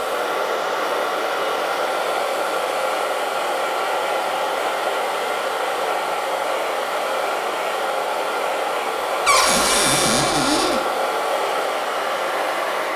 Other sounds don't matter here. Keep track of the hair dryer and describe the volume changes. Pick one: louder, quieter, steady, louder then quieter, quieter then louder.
steady.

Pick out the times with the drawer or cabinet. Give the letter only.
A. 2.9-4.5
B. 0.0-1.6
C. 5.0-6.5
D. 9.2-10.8
D.